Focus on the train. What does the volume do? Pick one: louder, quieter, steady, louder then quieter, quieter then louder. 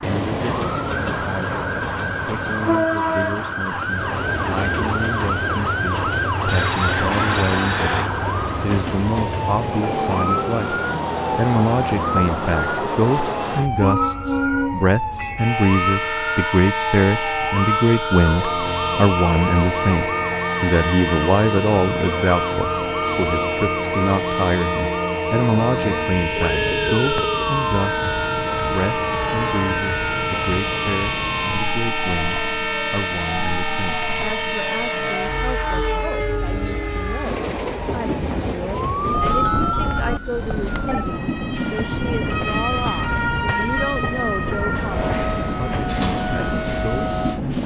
steady.